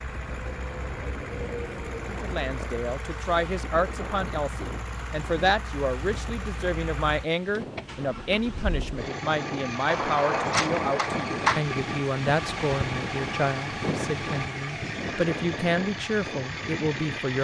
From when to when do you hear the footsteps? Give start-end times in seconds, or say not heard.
not heard.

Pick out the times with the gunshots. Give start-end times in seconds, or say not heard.
9.8-11.6.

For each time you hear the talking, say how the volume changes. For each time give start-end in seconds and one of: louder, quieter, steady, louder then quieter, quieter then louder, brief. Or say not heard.
2.0-17.4 steady.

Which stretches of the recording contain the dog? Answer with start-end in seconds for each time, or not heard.
not heard.